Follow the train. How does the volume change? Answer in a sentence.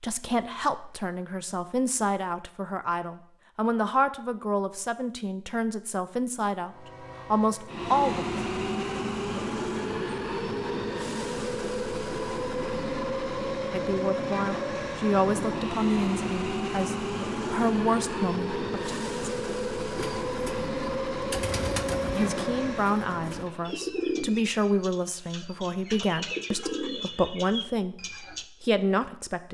The loudness of the train stays about the same.